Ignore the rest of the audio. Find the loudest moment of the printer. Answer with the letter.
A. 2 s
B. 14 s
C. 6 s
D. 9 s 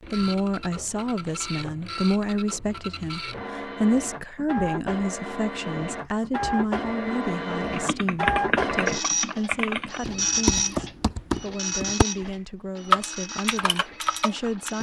D.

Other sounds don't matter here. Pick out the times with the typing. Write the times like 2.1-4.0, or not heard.
7.7-14.7.